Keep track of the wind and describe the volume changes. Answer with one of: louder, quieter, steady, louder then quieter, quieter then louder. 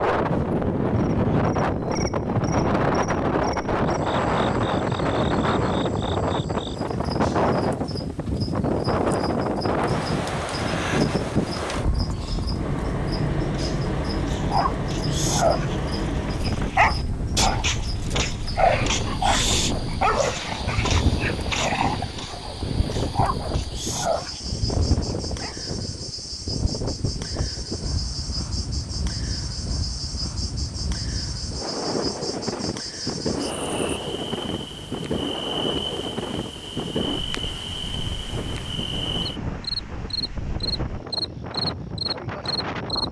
quieter.